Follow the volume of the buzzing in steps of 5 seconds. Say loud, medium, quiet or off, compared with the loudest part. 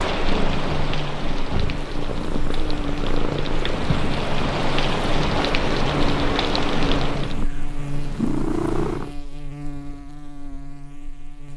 loud, loud, medium.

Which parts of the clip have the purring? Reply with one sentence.
The purring can be heard from 0.0 to 9.2 s.